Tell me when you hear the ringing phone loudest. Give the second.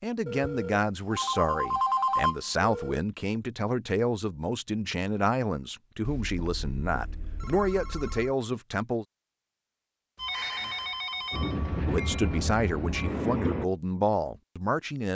2 s.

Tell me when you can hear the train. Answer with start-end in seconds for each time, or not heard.
11.3-13.7.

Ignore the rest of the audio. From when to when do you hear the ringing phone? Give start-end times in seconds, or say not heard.
0.2-3.0, 6.0-8.3, 10.2-11.6.